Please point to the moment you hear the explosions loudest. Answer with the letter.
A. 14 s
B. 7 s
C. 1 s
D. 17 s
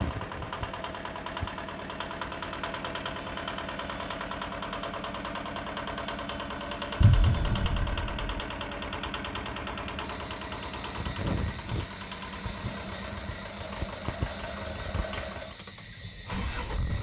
B.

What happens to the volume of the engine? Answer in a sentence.
The volume of the engine stays about the same.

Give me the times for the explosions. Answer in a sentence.
You can hear the explosions from 7.0 to 8.4 s.